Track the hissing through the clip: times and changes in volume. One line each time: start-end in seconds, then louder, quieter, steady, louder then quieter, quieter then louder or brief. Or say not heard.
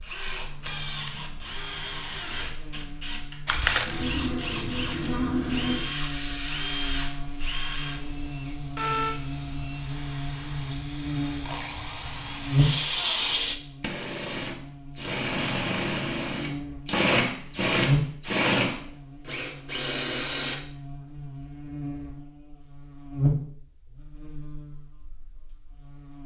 3.5-13.6 quieter then louder.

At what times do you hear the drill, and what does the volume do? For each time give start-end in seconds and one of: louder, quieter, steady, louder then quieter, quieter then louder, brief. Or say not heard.
0.0-20.6 louder.